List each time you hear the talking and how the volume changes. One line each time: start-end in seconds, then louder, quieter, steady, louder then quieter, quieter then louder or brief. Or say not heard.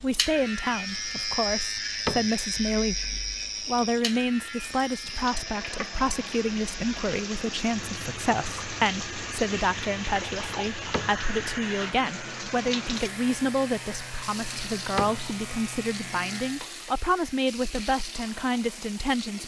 0.0-19.4 steady.